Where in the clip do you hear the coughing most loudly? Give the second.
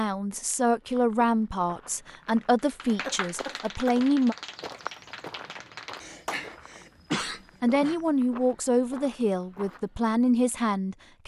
7 s.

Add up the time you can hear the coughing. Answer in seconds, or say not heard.
3 s.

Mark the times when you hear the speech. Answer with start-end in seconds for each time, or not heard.
0.0-4.3, 7.2-11.2.